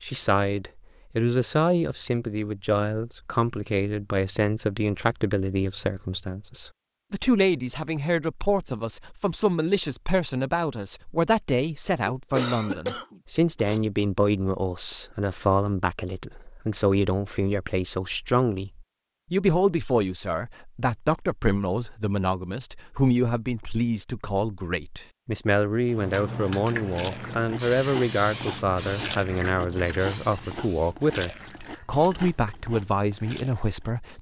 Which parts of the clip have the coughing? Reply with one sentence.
The coughing can be heard from 12.1 to 14.0 s.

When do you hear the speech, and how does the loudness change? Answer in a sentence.
The speech can be heard from 0.0 to 34.1 s, at a steady volume.